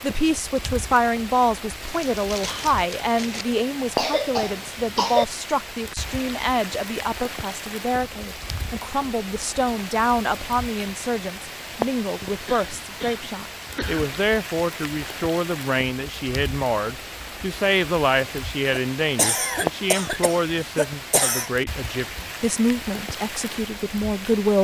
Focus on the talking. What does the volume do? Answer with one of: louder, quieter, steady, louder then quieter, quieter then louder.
steady.